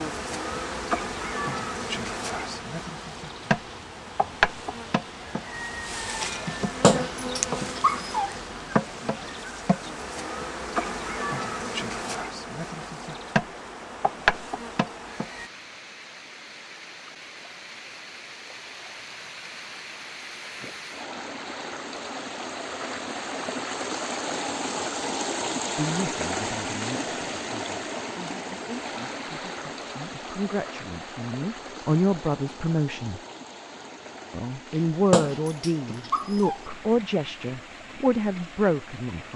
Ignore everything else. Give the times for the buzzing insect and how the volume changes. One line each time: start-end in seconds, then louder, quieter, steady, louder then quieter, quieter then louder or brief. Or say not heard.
0.0-15.5 steady.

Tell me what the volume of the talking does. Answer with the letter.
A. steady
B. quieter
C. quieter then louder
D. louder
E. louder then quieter
D.